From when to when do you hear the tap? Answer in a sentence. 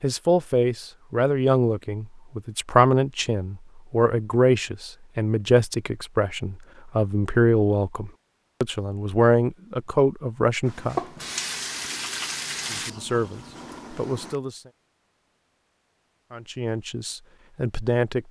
The tap can be heard from 10.7 to 14.3 s.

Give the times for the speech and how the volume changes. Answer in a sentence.
The speech can be heard from 0.0 to 11.0 s, at a steady volume; briefly from 12.7 to 14.7 s; and briefly from 16.3 to 18.2 s.